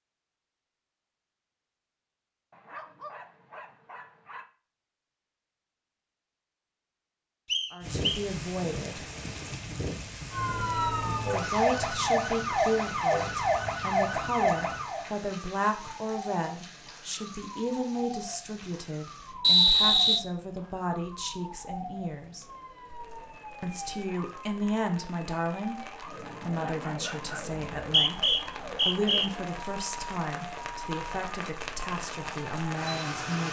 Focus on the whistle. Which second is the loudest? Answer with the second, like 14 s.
20 s.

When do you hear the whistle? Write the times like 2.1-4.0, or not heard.
7.5-8.2, 19.4-20.2, 27.8-29.3.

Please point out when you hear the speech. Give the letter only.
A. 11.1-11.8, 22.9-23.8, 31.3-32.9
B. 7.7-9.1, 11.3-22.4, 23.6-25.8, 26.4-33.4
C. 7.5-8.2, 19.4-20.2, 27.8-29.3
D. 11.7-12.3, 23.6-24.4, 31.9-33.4
B.